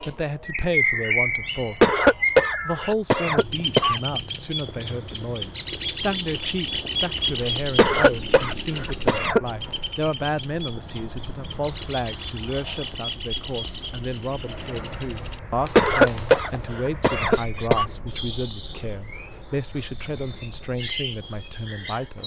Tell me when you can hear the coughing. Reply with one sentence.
You can hear the coughing from 1.8 to 4.0 s, from 7.8 to 9.4 s and from 15.8 to 17.9 s.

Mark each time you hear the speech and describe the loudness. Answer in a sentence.
You can hear the speech briefly from 0.1 to 1.9 s; and from 2.6 to 22.2 s, at a steady volume.